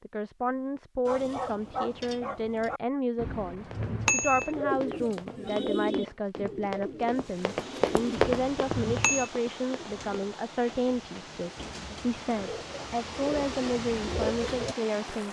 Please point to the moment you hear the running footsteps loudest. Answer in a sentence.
The volume of the running footsteps peaks at 8 seconds.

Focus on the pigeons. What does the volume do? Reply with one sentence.
The volume of the pigeons goes down, then up.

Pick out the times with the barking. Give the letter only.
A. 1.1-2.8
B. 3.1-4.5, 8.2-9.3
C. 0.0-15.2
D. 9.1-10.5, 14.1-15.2
A.